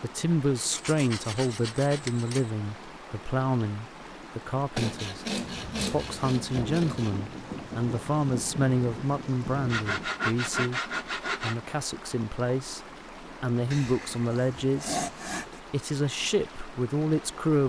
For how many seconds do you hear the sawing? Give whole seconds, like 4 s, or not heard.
8 s.